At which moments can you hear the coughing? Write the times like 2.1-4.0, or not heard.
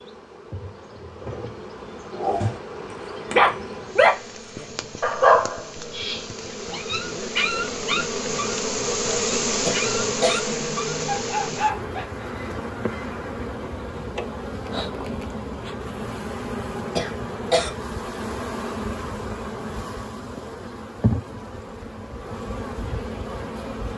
9.7-10.4, 16.9-17.7.